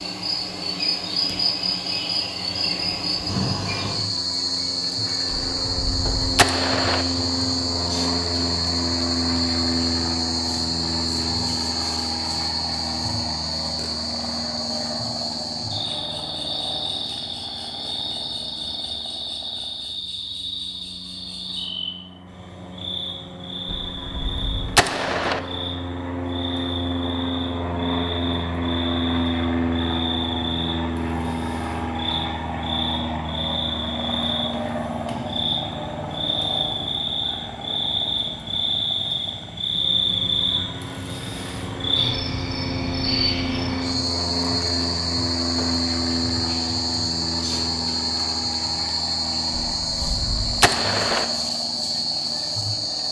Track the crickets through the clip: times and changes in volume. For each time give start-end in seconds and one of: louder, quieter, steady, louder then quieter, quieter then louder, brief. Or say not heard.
0.0-53.0 quieter then louder.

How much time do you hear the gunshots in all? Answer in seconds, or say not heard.
5 s.